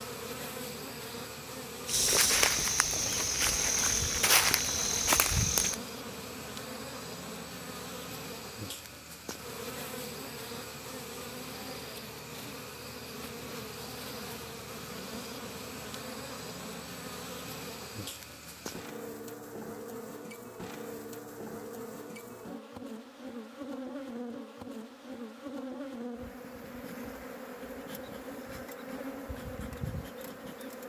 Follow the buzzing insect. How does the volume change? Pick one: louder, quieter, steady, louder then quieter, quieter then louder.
steady.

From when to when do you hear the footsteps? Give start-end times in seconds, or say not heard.
1.9-5.8.